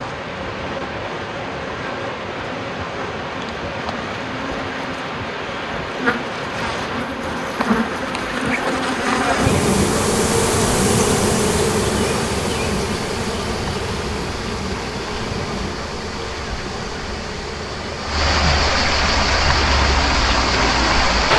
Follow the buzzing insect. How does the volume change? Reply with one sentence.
The loudness of the buzzing insect goes up, then down.